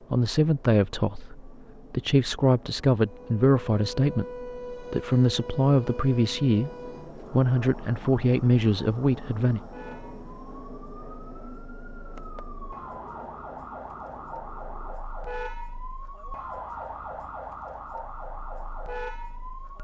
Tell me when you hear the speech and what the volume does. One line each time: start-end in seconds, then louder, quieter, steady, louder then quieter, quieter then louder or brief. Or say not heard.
0.1-9.6 steady.